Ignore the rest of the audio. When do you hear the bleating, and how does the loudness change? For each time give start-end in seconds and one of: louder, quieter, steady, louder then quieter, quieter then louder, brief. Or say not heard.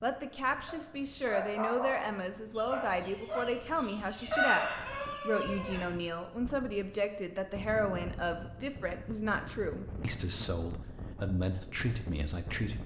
not heard.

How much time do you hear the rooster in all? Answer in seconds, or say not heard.
3 s.